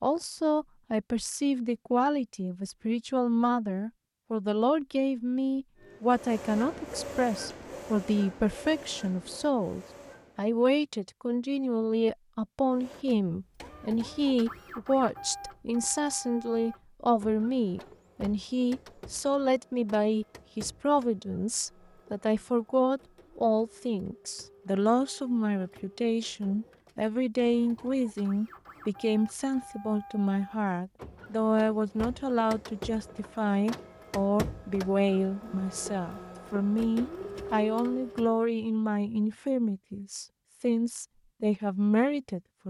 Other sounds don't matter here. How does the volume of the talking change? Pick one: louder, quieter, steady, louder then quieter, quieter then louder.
steady.